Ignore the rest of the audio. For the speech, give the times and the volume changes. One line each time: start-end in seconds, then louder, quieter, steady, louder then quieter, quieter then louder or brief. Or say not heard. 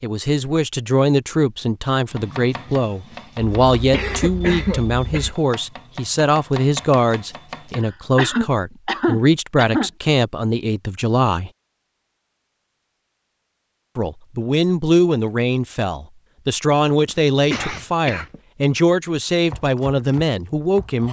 0.0-11.5 steady
13.9-21.0 steady.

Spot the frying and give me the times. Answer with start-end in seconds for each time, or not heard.
not heard.